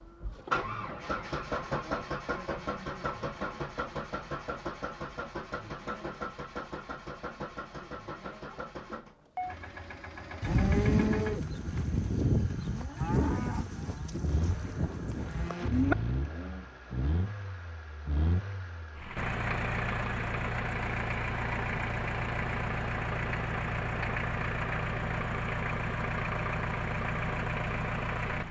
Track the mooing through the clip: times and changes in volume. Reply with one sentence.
The mooing can be heard from 10.4 to 16.6 s, getting quieter then louder.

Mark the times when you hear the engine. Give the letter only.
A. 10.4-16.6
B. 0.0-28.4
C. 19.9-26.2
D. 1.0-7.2
B.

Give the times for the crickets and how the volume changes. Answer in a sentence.
You can't hear the crickets here.